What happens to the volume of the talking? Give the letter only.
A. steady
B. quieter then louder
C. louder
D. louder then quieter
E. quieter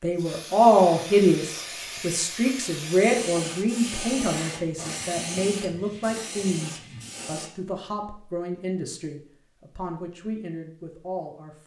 E.